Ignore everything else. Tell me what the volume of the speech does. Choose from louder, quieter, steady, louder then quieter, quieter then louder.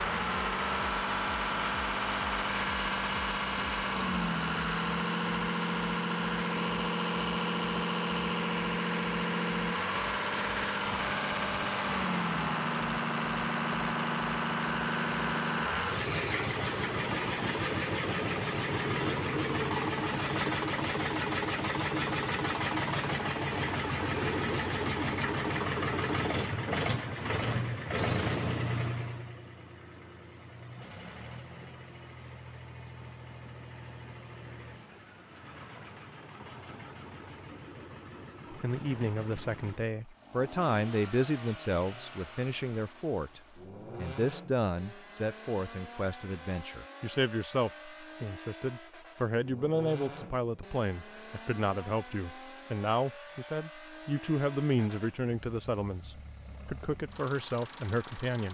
steady.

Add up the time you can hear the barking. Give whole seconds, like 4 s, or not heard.
not heard.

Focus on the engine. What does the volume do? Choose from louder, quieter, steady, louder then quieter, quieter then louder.
quieter.